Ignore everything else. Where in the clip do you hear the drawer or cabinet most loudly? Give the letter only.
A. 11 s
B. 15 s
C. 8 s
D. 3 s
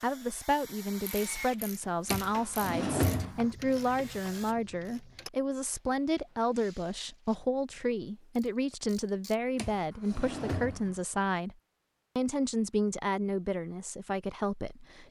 D.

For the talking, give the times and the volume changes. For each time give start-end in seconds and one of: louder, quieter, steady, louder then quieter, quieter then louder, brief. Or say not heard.
0.0-11.6 steady
12.2-15.0 brief.